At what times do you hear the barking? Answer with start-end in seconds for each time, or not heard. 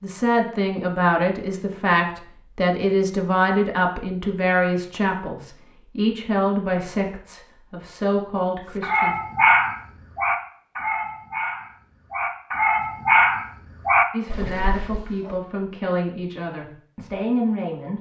8.7-15.3.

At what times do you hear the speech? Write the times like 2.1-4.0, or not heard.
0.0-9.2, 14.1-17.9.